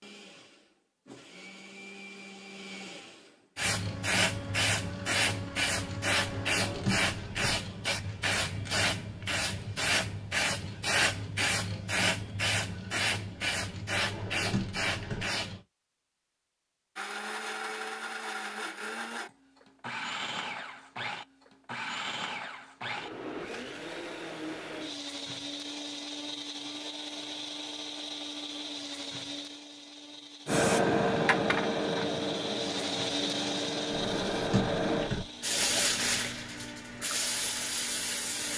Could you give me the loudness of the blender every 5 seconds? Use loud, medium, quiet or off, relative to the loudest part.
medium, medium, off, loud, loud, loud, loud, medium.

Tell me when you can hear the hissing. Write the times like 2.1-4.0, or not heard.
3.5-15.6, 30.4-38.5.